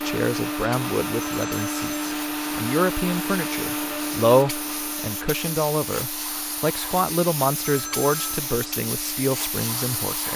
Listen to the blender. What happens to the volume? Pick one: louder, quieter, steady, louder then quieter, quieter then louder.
quieter.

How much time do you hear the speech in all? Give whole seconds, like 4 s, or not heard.
10 s.